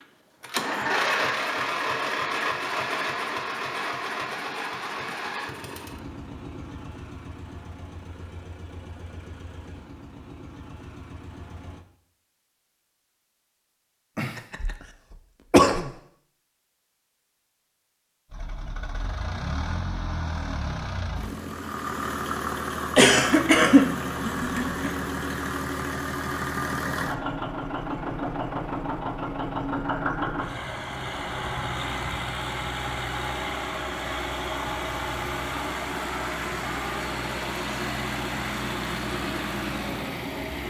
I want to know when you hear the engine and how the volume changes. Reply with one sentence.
You can hear the engine from 0.0 to 11.8 s, getting quieter; and from 18.3 to 40.6 s, at a steady volume.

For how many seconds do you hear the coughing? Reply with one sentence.
You can hear the coughing for 3 seconds altogether.